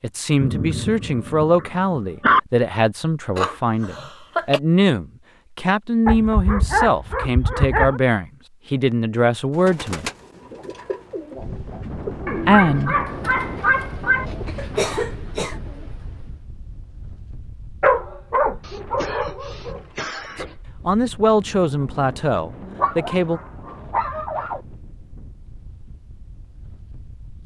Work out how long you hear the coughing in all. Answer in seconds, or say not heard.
4 s.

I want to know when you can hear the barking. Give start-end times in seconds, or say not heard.
0.4-2.4, 6.0-8.0, 12.2-14.2, 17.8-19.8, 22.6-24.6.